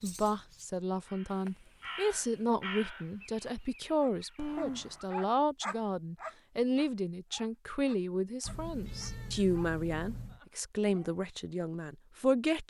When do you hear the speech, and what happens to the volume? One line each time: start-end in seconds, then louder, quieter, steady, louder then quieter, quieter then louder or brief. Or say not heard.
0.0-12.6 steady.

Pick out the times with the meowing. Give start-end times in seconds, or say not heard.
1.3-1.9, 4.3-5.1, 8.4-10.4.